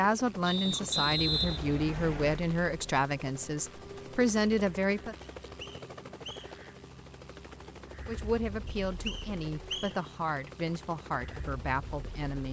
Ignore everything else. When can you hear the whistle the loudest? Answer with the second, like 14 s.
1 s.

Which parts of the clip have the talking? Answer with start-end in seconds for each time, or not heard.
0.0-5.2, 8.1-12.4.